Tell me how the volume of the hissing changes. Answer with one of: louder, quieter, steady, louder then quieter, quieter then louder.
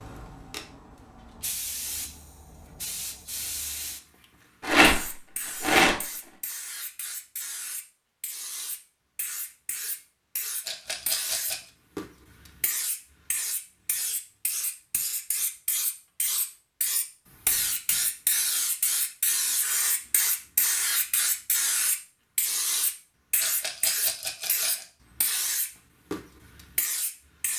louder.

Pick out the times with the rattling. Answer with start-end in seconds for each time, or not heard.
4.6-6.0, 10.7-11.6, 23.4-24.9.